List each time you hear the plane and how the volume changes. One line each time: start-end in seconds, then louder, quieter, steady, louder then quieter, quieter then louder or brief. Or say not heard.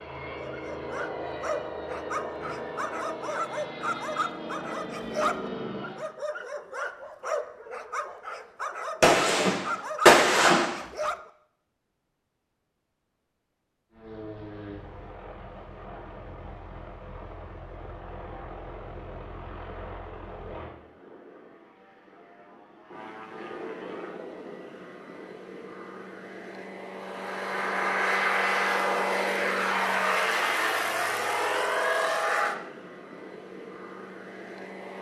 0.0-6.0 steady
13.9-34.9 louder.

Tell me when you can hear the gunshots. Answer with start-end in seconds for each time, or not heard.
9.0-10.8.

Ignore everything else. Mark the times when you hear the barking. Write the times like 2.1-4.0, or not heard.
0.3-11.3.